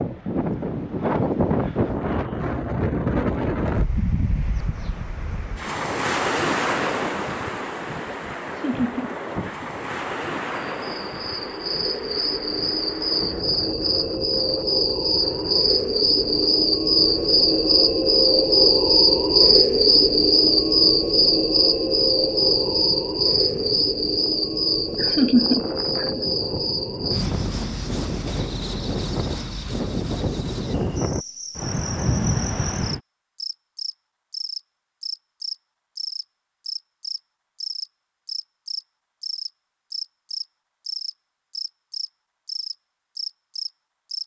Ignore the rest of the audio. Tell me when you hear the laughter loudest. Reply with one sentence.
The volume of the laughter peaks at 25 seconds.